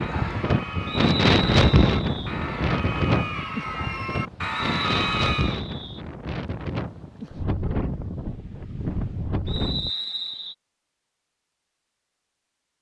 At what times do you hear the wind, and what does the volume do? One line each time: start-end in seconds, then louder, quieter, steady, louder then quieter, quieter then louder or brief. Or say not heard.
0.0-9.9 quieter.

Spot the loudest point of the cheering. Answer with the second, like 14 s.
5 s.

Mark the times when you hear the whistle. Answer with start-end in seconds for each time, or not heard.
0.8-2.3, 4.5-6.0, 9.4-10.6.